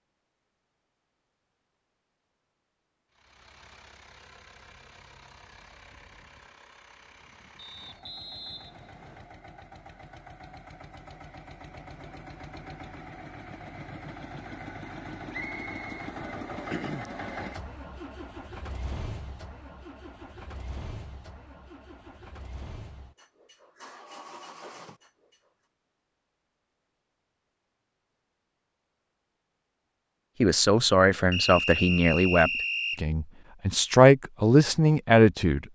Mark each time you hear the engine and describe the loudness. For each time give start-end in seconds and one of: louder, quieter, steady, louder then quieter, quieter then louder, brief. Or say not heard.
3.1-25.5 louder then quieter.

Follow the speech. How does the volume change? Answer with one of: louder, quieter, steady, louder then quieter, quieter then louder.
quieter then louder.